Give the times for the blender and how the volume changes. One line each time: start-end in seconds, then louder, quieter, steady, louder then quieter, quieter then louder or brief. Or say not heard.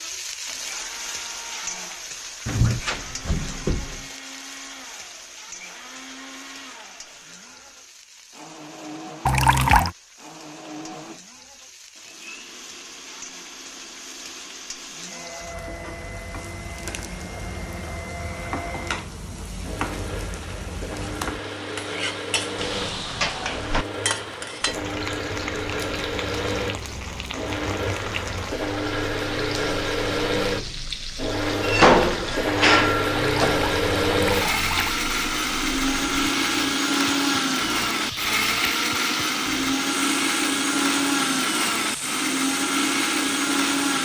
0.5-43.9 louder.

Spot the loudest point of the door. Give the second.
32 s.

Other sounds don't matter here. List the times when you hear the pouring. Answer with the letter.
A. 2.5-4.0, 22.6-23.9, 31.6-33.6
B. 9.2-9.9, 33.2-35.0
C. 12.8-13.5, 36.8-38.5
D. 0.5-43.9
B.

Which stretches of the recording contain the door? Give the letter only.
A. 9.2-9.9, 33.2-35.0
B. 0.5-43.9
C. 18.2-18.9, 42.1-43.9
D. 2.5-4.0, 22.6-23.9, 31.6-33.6
D.